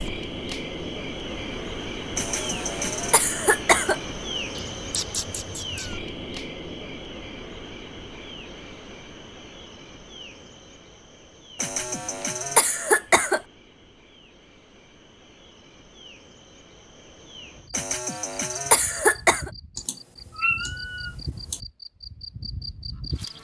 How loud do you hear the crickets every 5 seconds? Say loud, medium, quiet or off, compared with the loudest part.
loud, medium, quiet, quiet, medium.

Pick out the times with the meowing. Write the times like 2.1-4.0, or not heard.
4.5-6.0, 19.8-21.6.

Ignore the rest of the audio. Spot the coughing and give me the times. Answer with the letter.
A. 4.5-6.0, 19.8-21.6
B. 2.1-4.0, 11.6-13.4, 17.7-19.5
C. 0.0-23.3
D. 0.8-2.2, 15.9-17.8
B.